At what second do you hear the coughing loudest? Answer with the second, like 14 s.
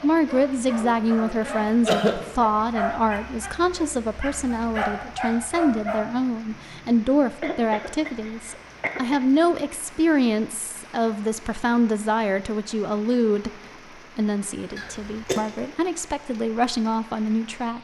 2 s.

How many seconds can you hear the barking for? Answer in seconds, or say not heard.
6 s.